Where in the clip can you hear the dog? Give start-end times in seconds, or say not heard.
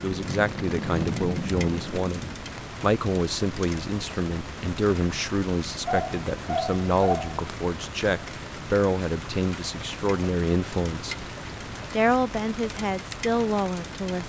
5.8-7.5.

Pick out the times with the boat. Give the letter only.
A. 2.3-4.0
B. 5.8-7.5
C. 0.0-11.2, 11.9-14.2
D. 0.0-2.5
D.